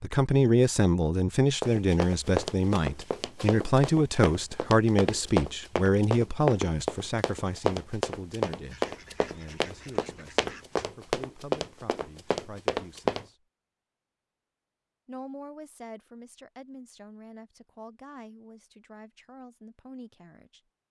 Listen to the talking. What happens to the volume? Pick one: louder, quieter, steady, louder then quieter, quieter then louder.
quieter.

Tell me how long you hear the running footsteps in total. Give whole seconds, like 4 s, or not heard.
12 s.